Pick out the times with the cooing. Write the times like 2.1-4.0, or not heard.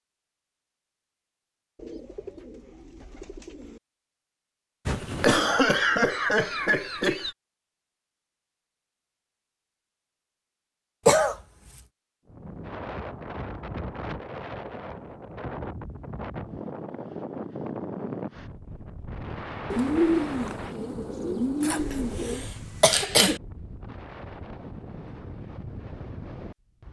1.8-3.8, 19.7-22.5.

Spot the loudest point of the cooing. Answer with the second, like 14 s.
20 s.